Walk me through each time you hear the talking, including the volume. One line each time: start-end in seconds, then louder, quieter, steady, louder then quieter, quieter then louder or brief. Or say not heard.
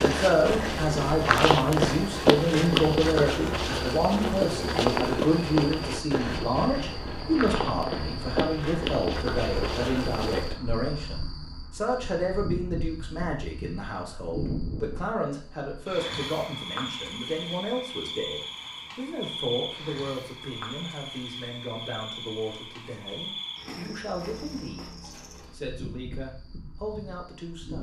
0.0-27.7 quieter.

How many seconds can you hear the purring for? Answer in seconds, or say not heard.
not heard.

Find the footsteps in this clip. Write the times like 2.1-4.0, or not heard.
0.0-10.6.